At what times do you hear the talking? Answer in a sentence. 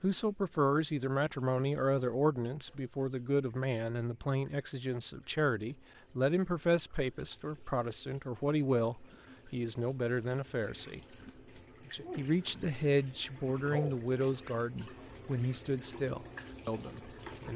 You can hear the talking from 0.0 to 11.0 s and from 11.8 to 17.5 s.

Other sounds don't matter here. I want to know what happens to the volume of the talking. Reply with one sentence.
The volume of the talking stays about the same.